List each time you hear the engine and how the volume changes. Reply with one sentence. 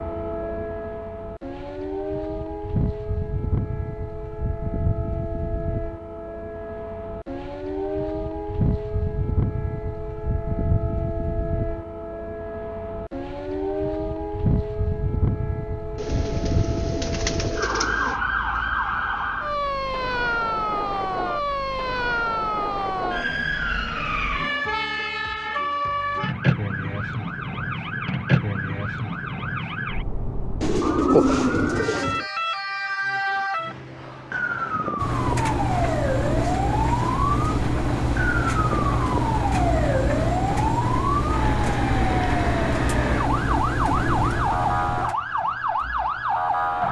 The engine can be heard from 35.0 to 46.8 s, getting quieter.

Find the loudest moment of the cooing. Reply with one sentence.
The loudest moment of the cooing is at 31 seconds.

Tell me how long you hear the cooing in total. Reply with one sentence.
The cooing can be heard for 4 seconds in total.